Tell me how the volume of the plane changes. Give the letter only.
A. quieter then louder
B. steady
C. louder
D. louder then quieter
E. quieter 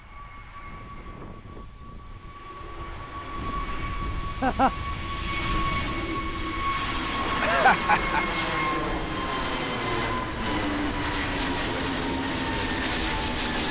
C.